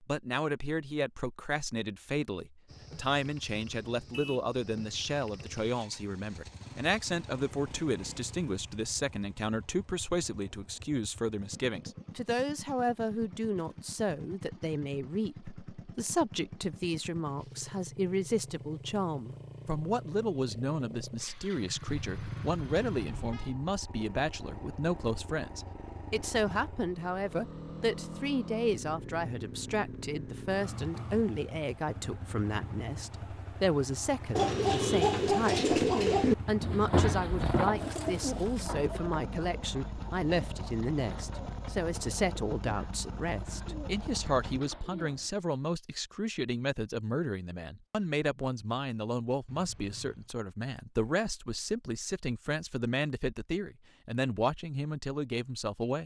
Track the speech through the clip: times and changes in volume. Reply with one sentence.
You can hear the speech from 0.0 to 56.0 s, at a steady volume.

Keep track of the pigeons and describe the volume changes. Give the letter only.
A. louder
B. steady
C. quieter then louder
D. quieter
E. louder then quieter
D.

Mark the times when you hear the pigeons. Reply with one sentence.
The pigeons can be heard from 34.4 to 45.3 s.